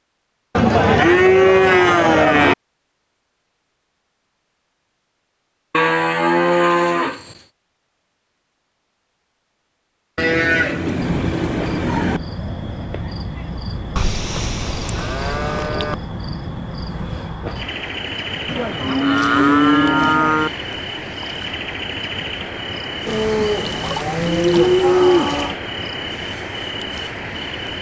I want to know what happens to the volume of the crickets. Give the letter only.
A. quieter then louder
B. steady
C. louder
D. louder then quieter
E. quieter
B.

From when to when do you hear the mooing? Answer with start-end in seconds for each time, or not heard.
0.6-2.5, 5.7-7.3, 10.2-12.2, 13.9-15.9, 18.4-20.5, 23.1-25.6.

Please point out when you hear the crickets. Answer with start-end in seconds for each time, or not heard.
11.0-27.7.